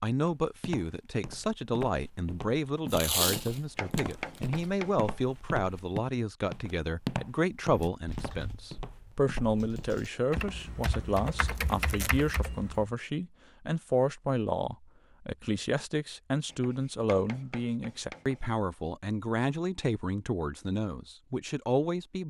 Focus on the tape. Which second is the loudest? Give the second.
3 s.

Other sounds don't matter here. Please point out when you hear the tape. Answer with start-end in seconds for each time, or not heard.
2.9-4.6, 11.6-12.2.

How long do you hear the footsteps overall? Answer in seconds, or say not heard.
11 s.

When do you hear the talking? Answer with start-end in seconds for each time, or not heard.
0.0-22.2.